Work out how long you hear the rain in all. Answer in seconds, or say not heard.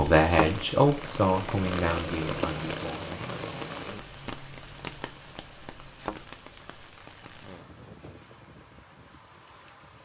10 s.